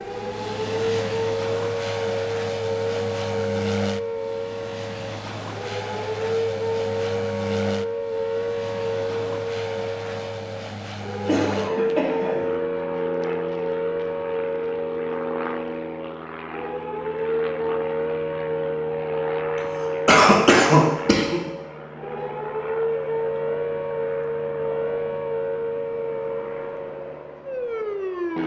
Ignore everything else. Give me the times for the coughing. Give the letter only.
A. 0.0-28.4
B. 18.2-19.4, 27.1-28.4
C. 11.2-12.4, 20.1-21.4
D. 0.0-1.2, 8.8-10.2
C.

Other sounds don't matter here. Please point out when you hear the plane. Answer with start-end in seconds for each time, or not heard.
0.0-28.4.